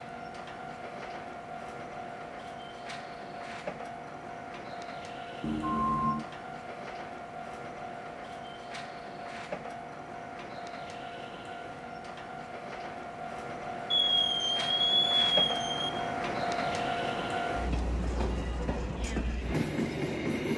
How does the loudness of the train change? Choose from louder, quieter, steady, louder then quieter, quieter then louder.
louder.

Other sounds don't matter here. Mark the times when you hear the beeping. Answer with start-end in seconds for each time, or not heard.
5.4-6.2, 13.9-15.9.